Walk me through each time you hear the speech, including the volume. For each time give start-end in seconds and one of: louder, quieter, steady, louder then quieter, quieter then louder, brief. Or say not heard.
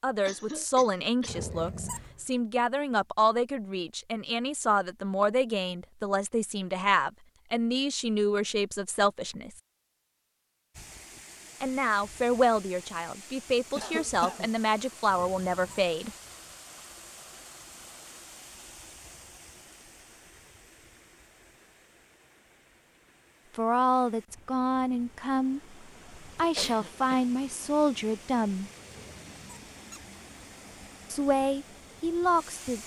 0.0-9.5 steady
11.6-16.1 quieter then louder
23.6-25.6 brief
26.4-28.7 brief
31.1-32.8 brief.